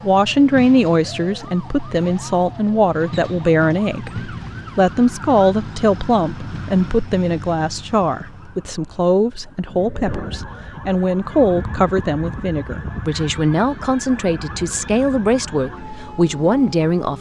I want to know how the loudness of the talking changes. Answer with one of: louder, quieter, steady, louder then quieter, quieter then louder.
steady.